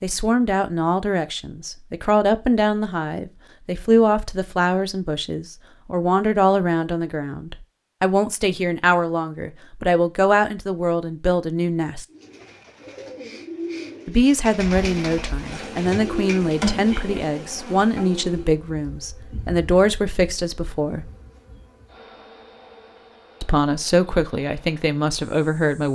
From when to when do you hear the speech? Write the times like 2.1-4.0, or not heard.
0.0-12.1, 14.1-21.1, 23.4-25.9.